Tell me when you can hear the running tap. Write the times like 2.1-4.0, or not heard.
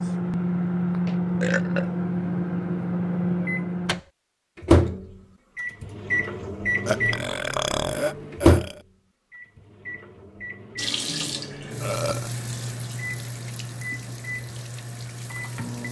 10.8-15.8.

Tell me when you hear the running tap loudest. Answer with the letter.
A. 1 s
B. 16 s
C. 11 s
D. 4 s
C.